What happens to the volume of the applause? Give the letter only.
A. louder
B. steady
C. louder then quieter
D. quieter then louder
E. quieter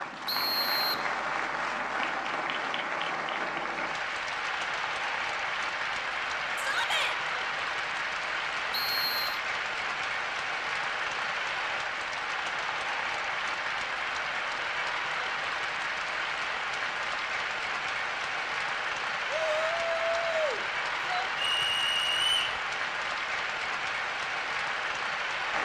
B.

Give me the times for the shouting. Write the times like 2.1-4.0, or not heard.
6.5-7.2, 19.3-21.2.